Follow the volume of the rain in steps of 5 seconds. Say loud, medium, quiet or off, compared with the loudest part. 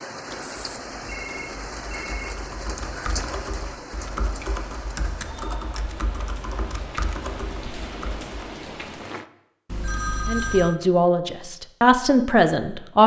loud, loud, off.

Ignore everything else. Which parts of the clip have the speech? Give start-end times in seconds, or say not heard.
10.2-13.0.